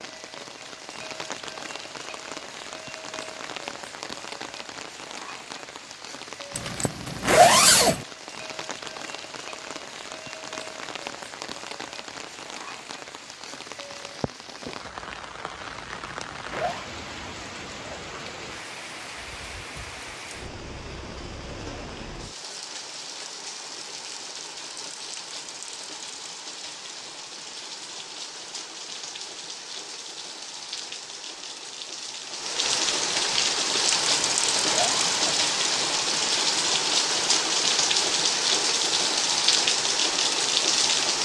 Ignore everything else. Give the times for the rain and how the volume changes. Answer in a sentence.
The rain can be heard from 0.0 to 41.2 s, getting louder.